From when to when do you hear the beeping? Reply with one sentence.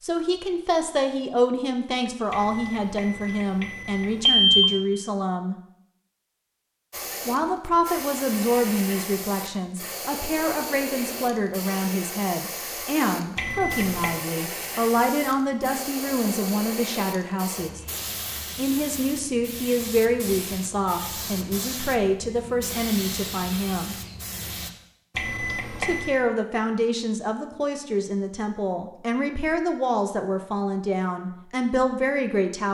The beeping can be heard from 2.3 to 4.8 s, from 13.3 to 14.2 s and from 25.1 to 26.1 s.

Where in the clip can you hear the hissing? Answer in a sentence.
You can hear the hissing from 6.9 to 24.7 s.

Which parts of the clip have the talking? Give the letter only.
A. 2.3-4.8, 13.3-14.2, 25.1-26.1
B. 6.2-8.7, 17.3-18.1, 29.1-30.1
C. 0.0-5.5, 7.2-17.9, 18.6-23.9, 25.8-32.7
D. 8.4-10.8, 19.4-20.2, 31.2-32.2
C.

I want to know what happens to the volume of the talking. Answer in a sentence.
The loudness of the talking stays about the same.